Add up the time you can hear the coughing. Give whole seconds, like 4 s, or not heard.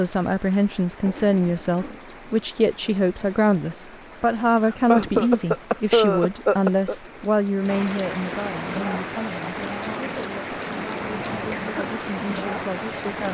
4 s.